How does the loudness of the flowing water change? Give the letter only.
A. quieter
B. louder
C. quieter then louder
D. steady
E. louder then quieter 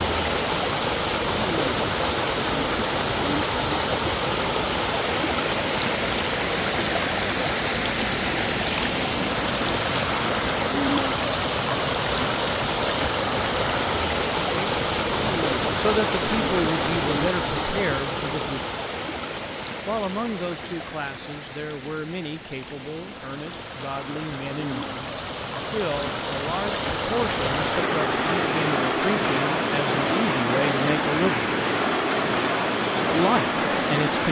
C.